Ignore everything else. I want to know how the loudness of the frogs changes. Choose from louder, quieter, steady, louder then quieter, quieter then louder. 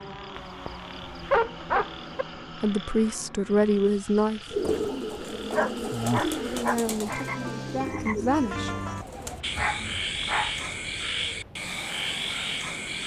louder.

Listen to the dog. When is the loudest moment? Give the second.
1 s.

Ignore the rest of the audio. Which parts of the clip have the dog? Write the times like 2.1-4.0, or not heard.
0.3-2.2, 5.5-7.2, 9.6-10.6.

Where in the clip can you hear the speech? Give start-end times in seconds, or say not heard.
2.6-4.4, 6.3-8.7.